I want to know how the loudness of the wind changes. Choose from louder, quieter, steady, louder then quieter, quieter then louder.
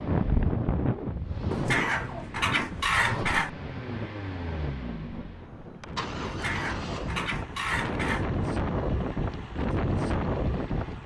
quieter then louder.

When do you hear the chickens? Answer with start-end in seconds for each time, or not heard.
1.5-3.5, 6.2-8.2.